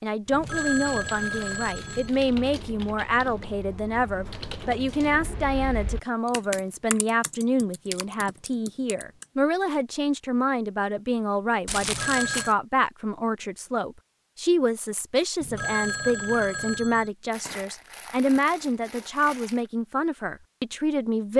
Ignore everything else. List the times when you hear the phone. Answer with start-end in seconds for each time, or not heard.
0.3-2.1, 11.8-12.6, 15.4-17.1.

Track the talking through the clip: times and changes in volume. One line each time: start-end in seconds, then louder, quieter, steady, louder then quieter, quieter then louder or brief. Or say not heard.
0.0-21.3 steady.